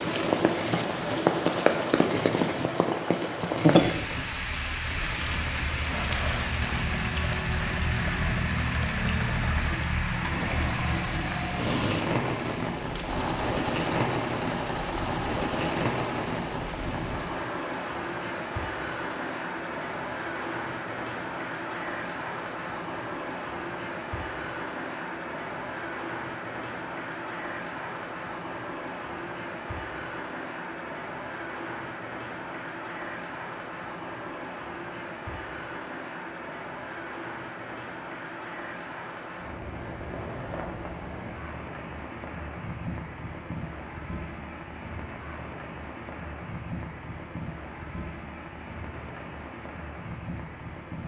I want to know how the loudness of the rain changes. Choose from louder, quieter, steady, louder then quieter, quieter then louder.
quieter.